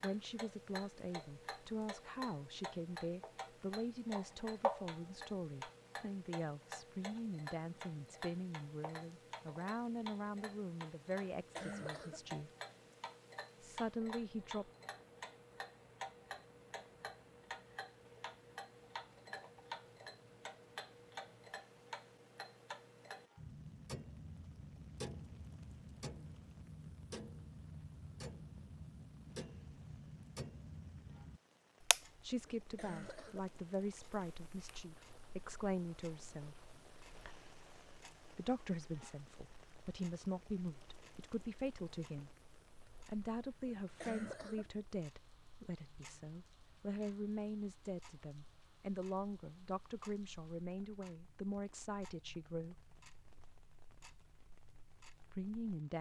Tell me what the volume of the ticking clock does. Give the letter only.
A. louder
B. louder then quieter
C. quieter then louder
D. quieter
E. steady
D.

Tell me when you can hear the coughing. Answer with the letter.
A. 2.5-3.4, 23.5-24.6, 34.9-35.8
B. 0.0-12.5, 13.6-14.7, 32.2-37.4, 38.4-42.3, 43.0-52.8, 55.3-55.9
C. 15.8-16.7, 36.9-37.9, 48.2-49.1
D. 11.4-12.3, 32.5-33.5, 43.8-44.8
D.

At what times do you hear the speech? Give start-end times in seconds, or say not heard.
0.0-12.5, 13.6-14.7, 32.2-37.4, 38.4-42.3, 43.0-52.8, 55.3-55.9.